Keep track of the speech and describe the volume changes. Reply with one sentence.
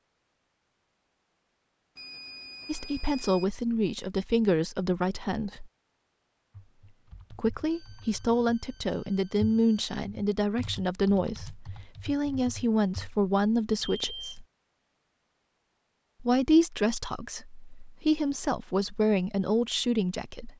The volume of the speech stays about the same.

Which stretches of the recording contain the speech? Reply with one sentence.
You can hear the speech from 2.6 to 5.7 s, from 7.3 to 14.4 s and from 16.2 to 20.5 s.